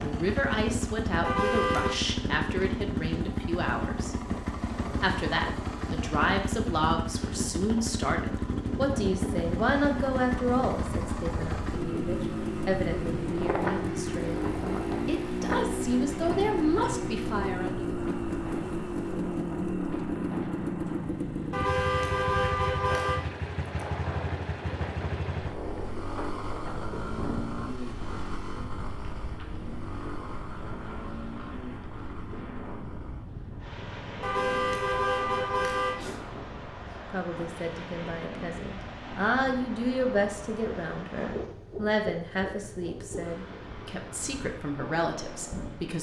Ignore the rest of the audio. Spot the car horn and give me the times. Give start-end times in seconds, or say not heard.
1.2-1.9, 21.5-23.2, 34.2-36.2.